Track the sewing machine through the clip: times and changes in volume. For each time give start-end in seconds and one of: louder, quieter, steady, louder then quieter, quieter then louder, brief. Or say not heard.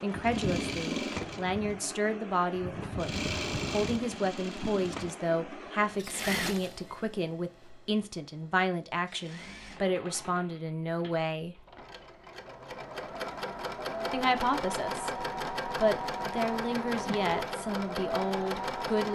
0.0-19.1 quieter then louder.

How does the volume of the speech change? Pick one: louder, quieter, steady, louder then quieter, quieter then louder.
steady.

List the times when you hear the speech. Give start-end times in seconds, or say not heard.
0.0-11.6, 14.1-19.1.